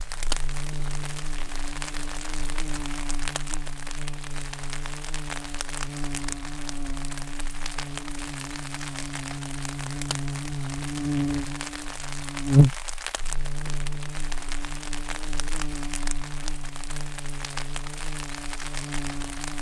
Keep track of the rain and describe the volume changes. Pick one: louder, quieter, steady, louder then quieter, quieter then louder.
steady.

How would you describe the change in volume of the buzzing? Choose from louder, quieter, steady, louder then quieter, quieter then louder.
louder then quieter.